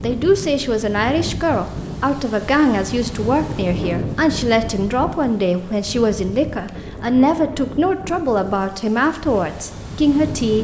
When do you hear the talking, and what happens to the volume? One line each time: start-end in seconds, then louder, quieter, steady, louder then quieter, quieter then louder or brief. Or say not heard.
0.0-10.5 steady.